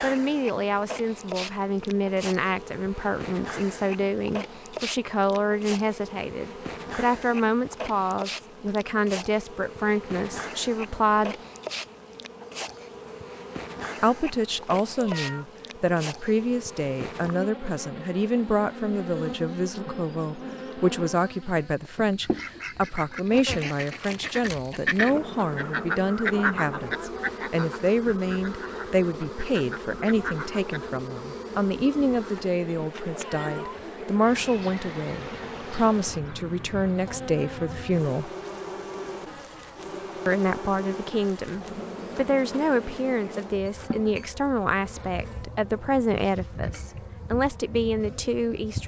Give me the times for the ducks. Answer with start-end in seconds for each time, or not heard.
22.2-31.0.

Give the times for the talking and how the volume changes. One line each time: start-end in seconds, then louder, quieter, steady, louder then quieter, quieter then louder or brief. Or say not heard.
0.0-11.3 steady
14.0-38.3 steady
40.2-48.8 steady.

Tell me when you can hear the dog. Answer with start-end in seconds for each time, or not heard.
not heard.